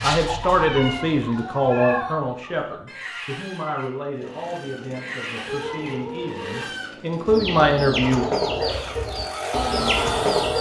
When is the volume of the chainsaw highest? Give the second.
10 s.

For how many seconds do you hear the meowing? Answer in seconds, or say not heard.
3 s.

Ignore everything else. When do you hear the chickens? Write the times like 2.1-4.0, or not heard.
0.0-10.5.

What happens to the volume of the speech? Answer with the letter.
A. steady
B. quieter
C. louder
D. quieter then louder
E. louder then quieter
D.